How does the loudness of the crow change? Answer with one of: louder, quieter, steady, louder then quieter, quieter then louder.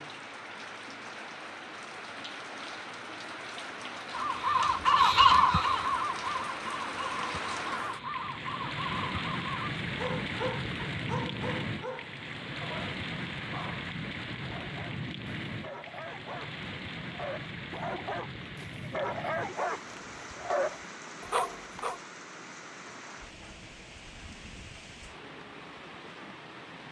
quieter.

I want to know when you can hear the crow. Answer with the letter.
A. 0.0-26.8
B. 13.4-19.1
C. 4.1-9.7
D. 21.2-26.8
C.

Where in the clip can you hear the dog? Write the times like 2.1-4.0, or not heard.
9.8-22.0.